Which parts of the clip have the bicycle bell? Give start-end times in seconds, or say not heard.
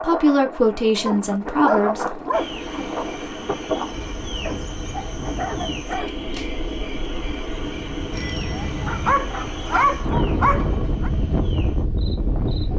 8.1-9.2.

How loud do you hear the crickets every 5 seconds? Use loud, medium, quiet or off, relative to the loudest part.
loud, loud, medium.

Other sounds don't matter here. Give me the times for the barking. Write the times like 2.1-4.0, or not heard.
1.1-2.5, 4.4-6.2, 8.8-11.1.